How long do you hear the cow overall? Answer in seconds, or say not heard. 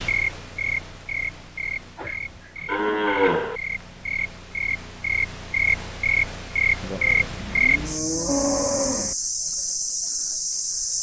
4 s.